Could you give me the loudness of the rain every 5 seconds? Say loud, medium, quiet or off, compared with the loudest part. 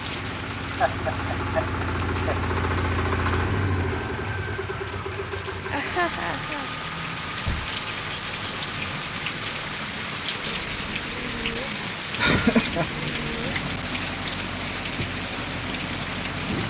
medium, loud, loud, loud.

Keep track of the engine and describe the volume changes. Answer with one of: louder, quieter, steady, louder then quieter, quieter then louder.
quieter.